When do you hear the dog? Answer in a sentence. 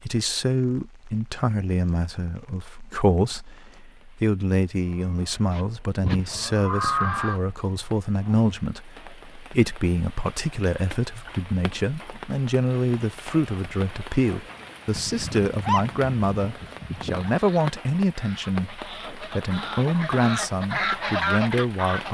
You can hear the dog from 14.9 to 17.4 s.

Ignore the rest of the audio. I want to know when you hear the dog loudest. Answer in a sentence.
The volume of the dog peaks at 16 seconds.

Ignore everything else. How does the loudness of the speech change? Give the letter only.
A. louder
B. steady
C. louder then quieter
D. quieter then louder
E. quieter
B.